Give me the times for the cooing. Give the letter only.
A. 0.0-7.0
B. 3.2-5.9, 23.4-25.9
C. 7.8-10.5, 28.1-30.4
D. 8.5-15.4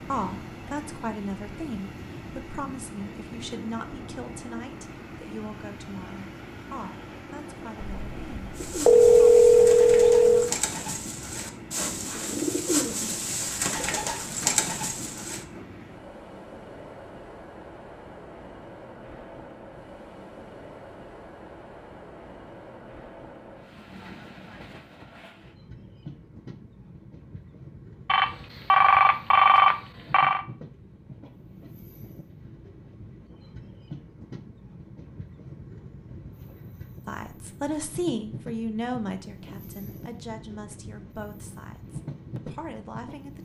D.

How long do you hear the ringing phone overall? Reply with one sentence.
You can hear the ringing phone for 5 seconds altogether.